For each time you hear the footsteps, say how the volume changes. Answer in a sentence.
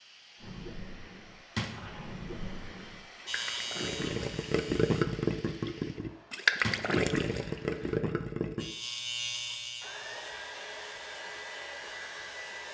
You can't hear the footsteps here.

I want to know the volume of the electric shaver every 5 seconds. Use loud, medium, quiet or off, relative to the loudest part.
loud, loud, quiet.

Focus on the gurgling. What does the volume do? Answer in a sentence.
The volume of the gurgling goes up.